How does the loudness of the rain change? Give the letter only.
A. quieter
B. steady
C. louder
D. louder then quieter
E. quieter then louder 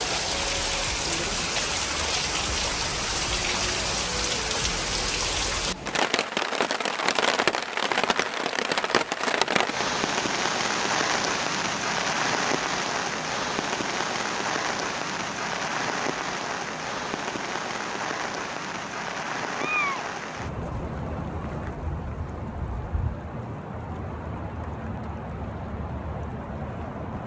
A.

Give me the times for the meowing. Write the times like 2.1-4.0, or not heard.
19.6-20.1.